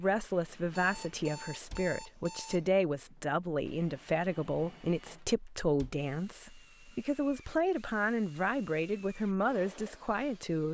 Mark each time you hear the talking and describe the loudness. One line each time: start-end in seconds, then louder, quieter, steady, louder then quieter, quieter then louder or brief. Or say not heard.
0.0-10.7 steady.